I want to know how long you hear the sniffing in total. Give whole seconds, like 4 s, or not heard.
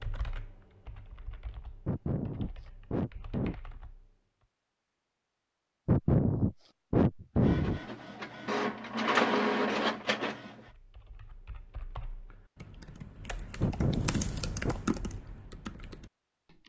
5 s.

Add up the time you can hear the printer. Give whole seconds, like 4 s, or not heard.
3 s.